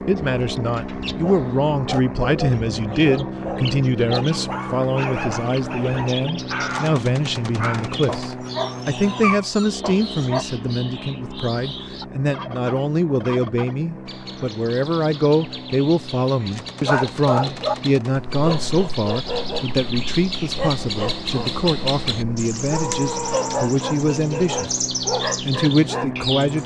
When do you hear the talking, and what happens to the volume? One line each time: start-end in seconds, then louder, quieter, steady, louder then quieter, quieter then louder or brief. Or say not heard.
0.1-26.6 steady.